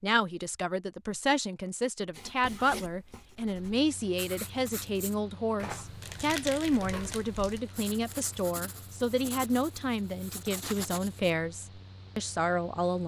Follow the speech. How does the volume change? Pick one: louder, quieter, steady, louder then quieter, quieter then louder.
steady.